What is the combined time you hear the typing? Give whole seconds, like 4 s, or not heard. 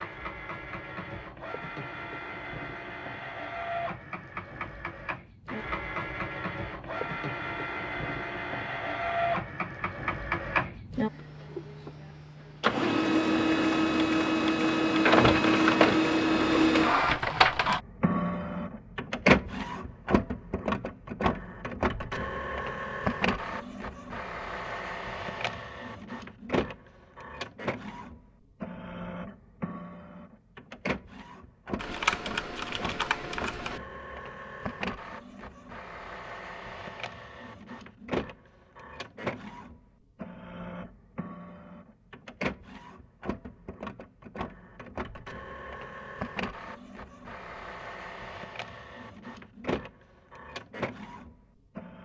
2 s.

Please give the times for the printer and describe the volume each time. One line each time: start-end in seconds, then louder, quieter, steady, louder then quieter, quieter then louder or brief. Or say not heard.
0.0-52.0 louder then quieter.